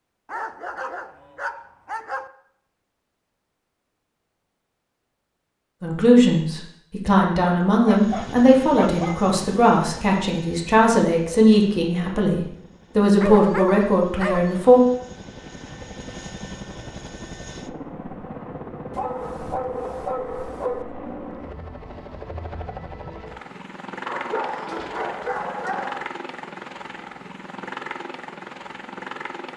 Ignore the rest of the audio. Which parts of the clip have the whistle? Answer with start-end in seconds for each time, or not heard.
not heard.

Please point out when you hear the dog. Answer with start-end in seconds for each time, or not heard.
0.2-2.3, 7.8-9.2, 13.2-14.7, 18.9-20.9, 24.1-26.1.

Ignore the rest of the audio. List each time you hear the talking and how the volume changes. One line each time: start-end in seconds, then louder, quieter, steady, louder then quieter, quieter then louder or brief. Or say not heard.
5.8-14.8 steady.